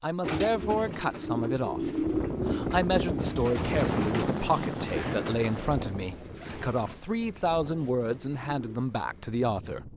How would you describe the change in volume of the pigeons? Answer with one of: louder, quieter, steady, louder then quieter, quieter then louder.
quieter.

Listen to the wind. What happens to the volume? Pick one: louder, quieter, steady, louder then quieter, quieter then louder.
quieter.